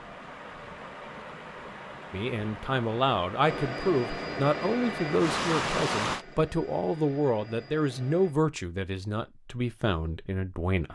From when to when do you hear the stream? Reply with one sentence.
You can hear the stream from 0.0 to 6.2 s.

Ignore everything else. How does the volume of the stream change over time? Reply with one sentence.
The volume of the stream goes up.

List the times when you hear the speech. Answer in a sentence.
The speech can be heard from 2.1 to 10.9 s.